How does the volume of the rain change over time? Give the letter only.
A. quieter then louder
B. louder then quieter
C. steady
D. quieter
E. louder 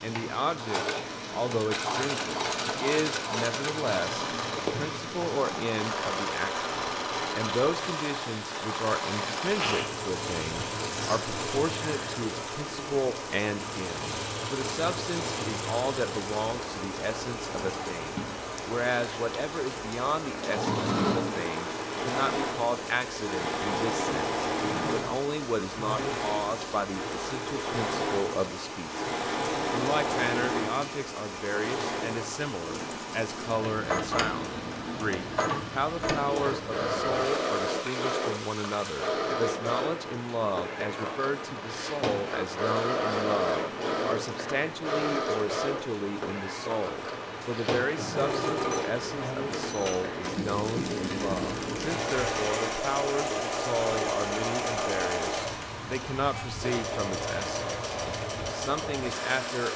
C.